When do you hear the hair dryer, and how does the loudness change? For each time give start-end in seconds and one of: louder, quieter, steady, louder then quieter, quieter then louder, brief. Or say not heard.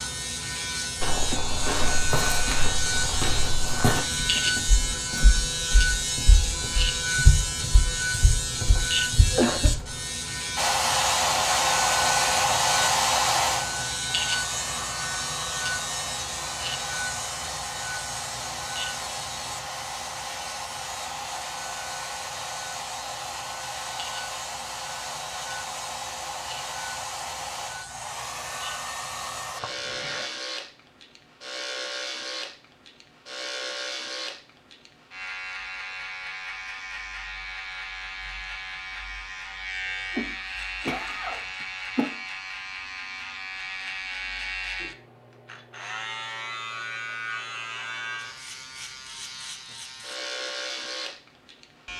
10.6-29.6 quieter.